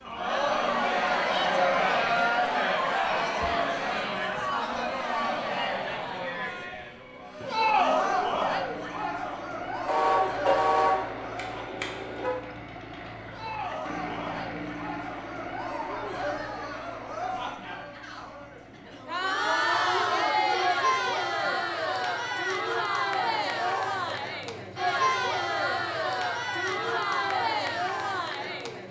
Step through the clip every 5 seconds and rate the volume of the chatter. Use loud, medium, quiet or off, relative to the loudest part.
loud, loud, medium, medium, loud, loud.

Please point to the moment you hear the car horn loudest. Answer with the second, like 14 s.
11 s.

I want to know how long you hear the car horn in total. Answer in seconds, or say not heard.
3 s.